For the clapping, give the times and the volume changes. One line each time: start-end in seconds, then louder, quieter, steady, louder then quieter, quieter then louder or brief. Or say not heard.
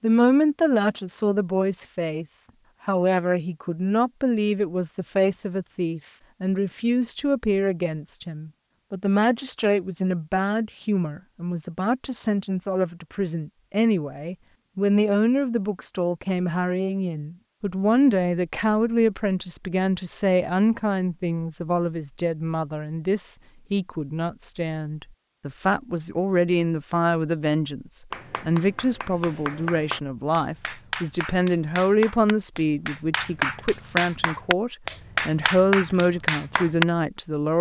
28.1-36.9 louder.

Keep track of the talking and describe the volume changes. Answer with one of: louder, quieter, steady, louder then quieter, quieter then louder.
steady.